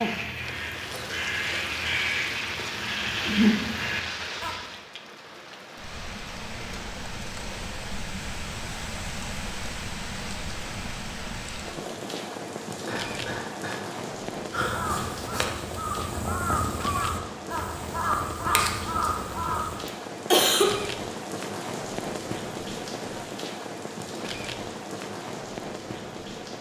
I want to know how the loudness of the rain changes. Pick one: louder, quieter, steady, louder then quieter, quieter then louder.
steady.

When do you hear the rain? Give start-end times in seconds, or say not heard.
0.3-26.5.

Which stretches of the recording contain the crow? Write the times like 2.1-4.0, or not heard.
0.0-4.5, 14.5-19.8.